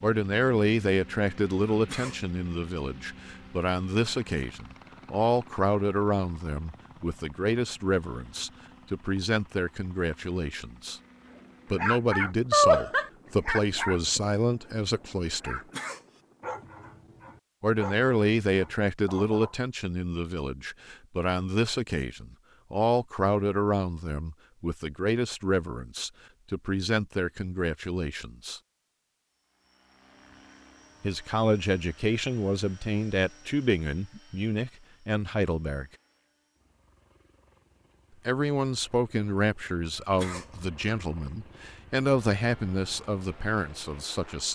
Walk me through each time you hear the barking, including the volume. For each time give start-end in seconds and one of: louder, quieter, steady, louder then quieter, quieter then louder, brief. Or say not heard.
11.3-19.6 quieter.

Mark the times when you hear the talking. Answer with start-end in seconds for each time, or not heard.
0.0-11.0, 11.7-15.6, 17.6-28.6, 31.0-35.9, 38.2-44.5.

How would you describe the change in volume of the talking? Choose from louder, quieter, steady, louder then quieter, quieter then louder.
steady.